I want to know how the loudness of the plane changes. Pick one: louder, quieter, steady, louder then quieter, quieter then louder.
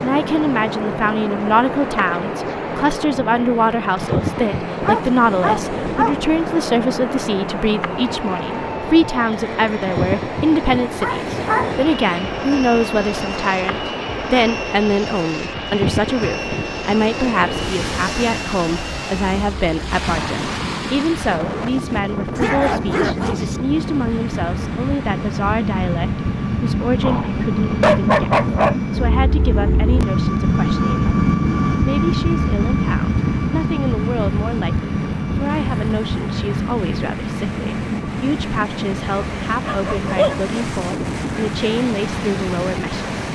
louder then quieter.